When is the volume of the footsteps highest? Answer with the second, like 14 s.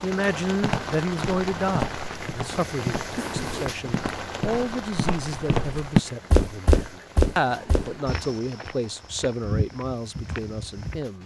6 s.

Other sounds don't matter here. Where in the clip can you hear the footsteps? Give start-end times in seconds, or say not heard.
0.6-11.0.